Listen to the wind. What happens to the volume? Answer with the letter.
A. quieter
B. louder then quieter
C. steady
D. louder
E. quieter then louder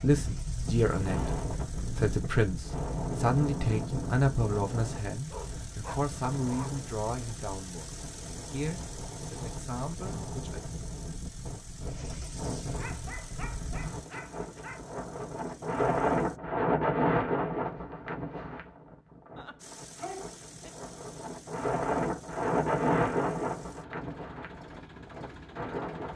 E.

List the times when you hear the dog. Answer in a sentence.
The dog can be heard from 5.2 to 6.8 s, from 12.8 to 14.8 s and from 19.4 to 20.8 s.